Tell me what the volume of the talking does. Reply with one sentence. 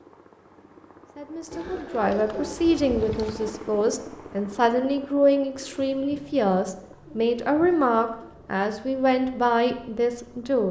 The volume of the talking stays about the same.